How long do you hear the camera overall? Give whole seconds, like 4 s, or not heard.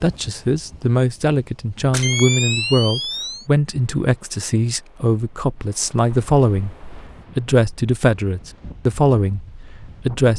3 s.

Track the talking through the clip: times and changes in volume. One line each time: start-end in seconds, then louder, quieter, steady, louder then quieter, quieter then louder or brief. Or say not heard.
0.0-6.8 steady
7.3-10.3 brief.